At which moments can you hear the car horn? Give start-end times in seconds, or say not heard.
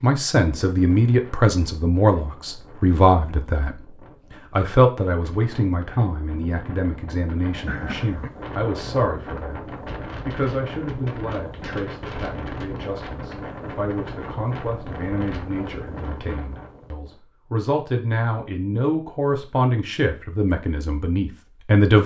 7.7-8.3.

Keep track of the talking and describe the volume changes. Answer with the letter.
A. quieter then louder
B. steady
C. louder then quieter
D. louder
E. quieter
A.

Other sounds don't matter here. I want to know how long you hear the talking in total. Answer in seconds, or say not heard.
21 s.